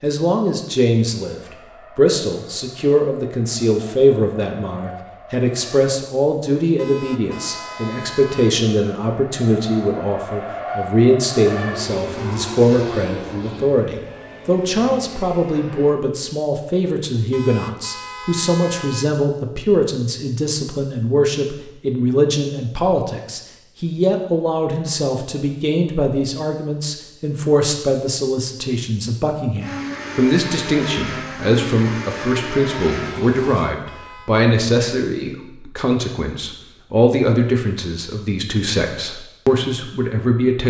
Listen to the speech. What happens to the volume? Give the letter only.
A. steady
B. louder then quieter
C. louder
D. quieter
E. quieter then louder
A.